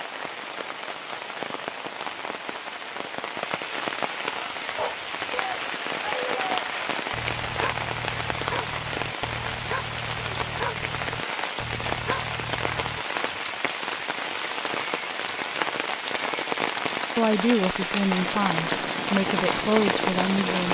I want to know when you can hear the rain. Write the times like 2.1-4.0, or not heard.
0.0-20.7.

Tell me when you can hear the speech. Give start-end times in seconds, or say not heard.
17.1-20.7.